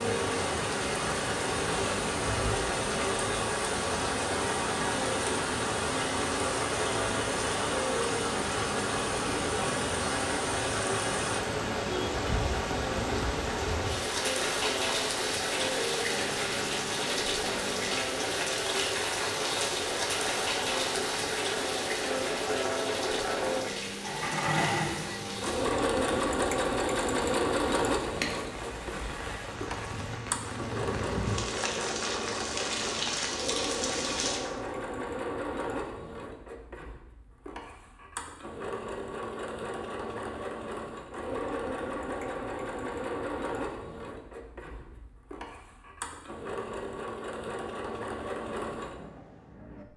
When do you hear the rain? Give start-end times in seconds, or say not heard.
0.0-34.4.